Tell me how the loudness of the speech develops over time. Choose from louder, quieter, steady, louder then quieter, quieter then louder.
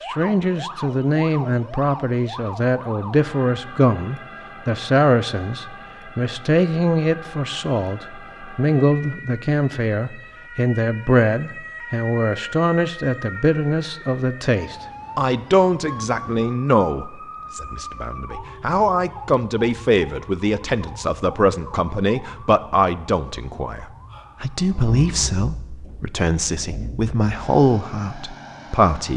steady.